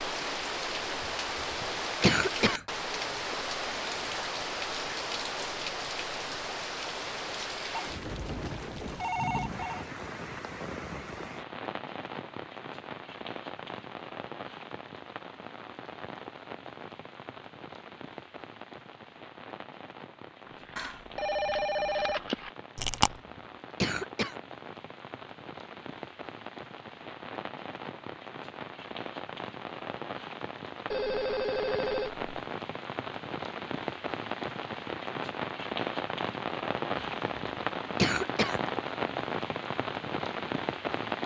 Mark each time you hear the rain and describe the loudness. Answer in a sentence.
You can hear the rain from 0.0 to 41.2 s, getting quieter then louder.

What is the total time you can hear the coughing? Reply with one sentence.
You can hear the coughing for 3 seconds altogether.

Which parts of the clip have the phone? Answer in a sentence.
The phone can be heard from 7.7 to 9.8 s, from 20.8 to 22.2 s and from 30.9 to 32.2 s.